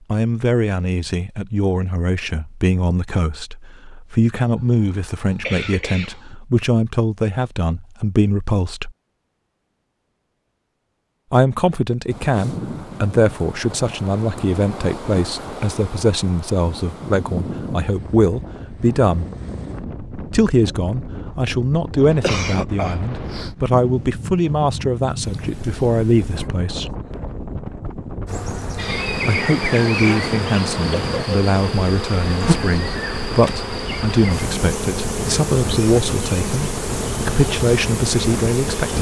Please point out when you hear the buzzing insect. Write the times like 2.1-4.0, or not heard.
28.2-38.9.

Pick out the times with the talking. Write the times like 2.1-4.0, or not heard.
0.1-8.9, 11.3-19.2, 20.3-26.9, 29.2-38.9.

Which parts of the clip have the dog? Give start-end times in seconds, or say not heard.
not heard.